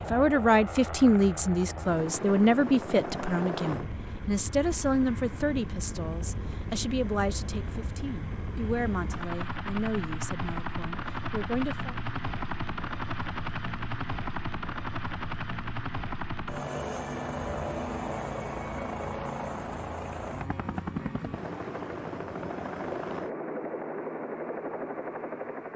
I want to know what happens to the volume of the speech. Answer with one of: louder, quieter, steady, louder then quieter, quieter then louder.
quieter.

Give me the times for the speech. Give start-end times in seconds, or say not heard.
0.0-11.9.